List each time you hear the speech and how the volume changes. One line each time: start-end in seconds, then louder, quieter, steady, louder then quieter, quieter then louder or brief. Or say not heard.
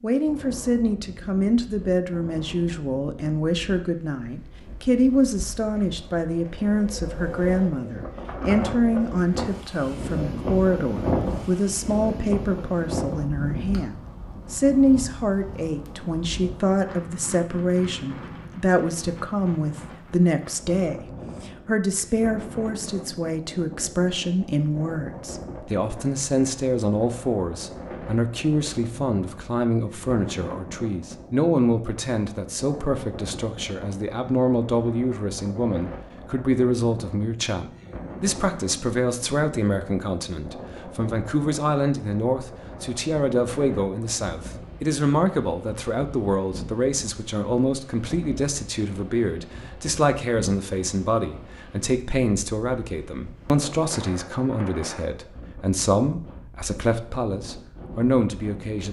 0.0-58.8 steady.